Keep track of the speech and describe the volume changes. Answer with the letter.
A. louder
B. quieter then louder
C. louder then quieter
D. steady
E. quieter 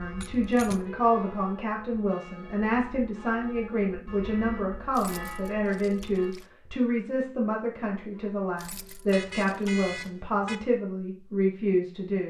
D.